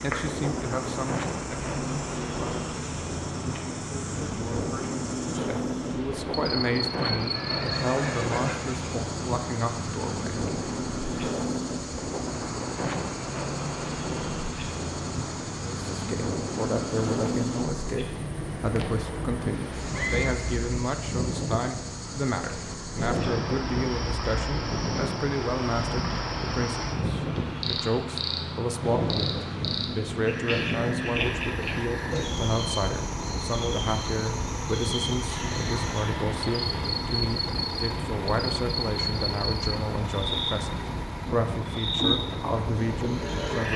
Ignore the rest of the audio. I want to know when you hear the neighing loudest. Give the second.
20 s.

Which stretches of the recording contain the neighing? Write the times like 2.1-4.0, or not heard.
7.2-8.9, 19.6-20.4, 35.2-36.9.